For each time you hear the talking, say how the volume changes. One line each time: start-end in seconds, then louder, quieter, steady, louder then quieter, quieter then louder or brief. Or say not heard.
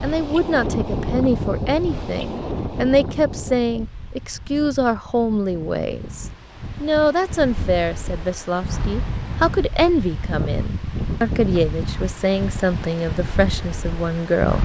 0.0-14.5 steady.